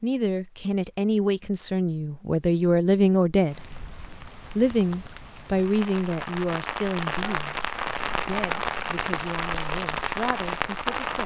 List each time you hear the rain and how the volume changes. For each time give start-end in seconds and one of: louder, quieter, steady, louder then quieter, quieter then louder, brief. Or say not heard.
3.5-11.2 louder.